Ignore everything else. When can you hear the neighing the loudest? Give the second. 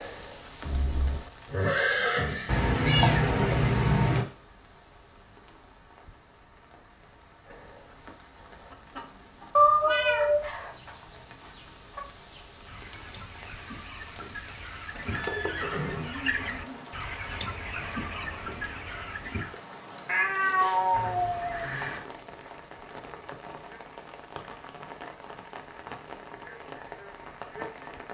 2 s.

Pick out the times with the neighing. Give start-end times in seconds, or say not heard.
0.7-2.7, 15.1-16.9, 20.9-22.1.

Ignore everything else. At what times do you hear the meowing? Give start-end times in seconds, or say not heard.
2.5-4.2, 9.6-10.4, 20.1-21.6.